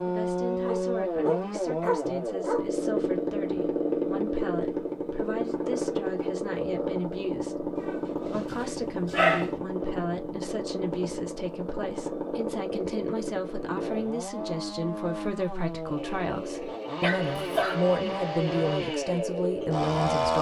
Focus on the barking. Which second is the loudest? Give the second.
9 s.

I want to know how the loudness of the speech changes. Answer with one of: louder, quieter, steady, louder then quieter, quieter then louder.
louder.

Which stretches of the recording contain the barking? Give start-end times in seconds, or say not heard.
0.7-2.6, 7.8-9.5, 17.0-17.8.